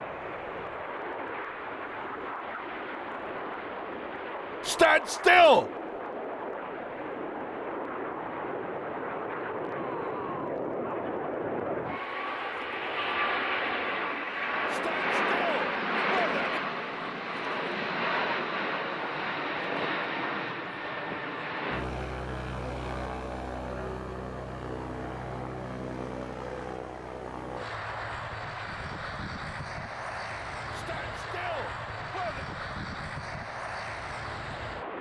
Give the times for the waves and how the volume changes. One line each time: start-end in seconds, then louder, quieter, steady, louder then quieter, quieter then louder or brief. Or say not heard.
not heard.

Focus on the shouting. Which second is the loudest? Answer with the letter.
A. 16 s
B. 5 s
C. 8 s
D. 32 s
B.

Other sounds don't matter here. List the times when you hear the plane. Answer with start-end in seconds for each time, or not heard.
0.0-34.9.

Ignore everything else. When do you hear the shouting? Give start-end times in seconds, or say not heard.
4.7-5.7, 14.7-16.6, 30.7-32.5.